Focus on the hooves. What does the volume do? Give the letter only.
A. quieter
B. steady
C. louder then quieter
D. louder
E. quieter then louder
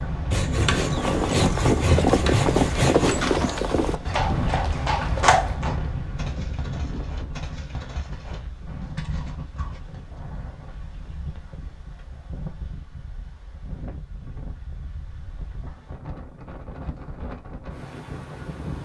A.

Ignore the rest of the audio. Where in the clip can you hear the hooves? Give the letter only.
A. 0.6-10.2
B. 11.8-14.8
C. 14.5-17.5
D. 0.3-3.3
A.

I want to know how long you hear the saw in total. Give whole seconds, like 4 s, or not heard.
3 s.